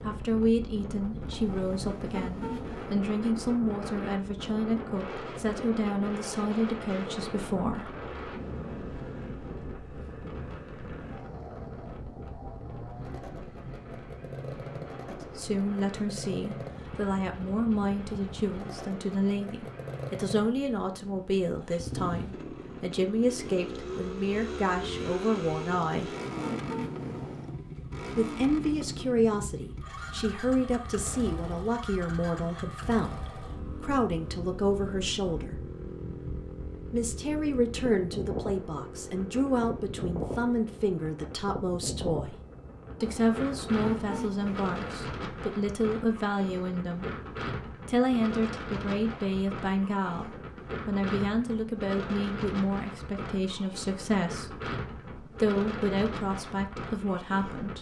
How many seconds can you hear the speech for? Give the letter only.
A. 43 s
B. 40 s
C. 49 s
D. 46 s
D.